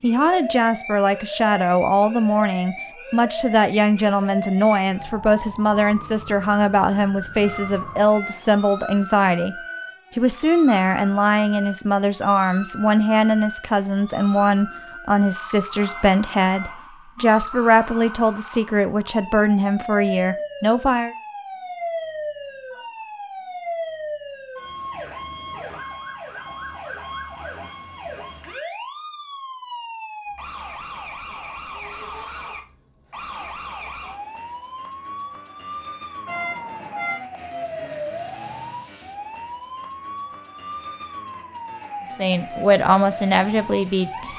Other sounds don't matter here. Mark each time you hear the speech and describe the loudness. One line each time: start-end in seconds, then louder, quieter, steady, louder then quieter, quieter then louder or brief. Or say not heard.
0.0-9.6 steady
10.2-21.1 steady
42.1-44.3 brief.